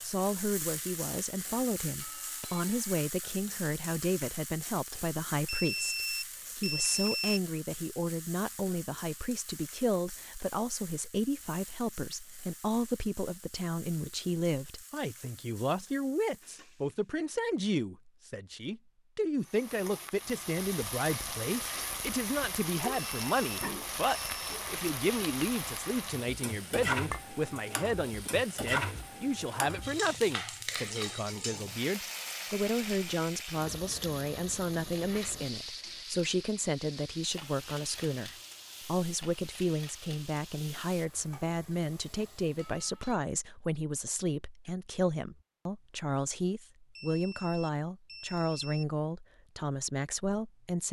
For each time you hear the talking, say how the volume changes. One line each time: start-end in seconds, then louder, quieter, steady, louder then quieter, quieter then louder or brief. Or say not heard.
0.0-50.8 steady.